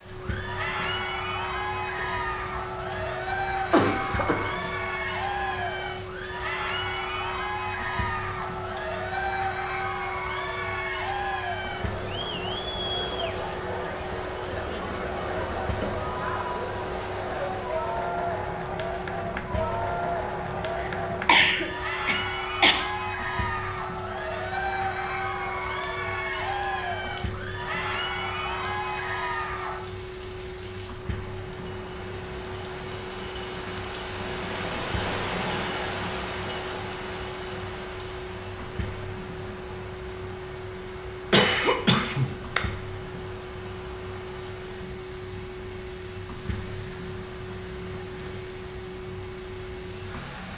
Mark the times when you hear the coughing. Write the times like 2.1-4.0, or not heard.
1.9-4.6, 20.8-22.8, 41.3-42.6.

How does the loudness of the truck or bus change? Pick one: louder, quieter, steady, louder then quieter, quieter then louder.
steady.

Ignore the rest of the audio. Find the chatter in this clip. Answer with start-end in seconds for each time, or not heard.
0.1-29.8.